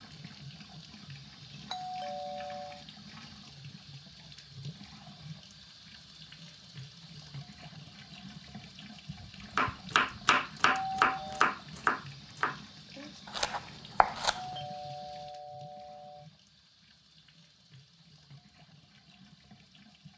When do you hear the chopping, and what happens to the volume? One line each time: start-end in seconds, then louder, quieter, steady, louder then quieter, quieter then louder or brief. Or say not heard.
9.6-14.4 quieter.